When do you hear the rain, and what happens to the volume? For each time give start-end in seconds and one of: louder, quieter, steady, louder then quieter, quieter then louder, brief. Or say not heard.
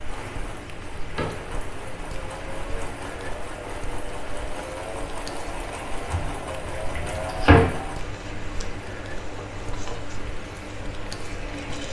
0.0-11.8 steady.